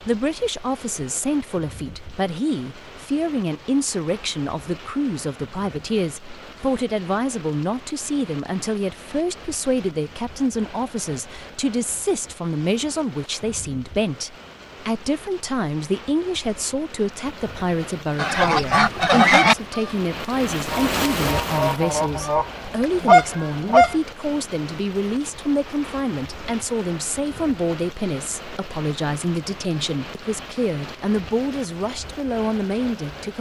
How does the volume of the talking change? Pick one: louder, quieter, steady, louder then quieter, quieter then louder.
steady.